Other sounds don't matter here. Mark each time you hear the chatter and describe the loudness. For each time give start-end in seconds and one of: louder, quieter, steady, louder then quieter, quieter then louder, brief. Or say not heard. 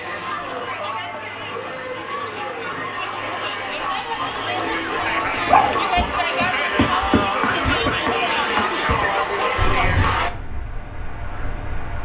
0.0-10.3 louder.